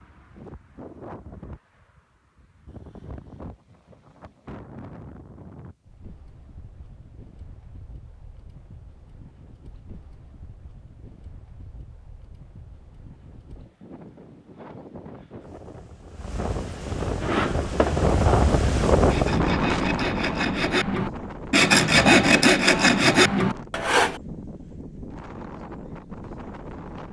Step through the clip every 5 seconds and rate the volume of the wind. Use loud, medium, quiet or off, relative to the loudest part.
quiet, quiet, quiet, loud, medium, quiet.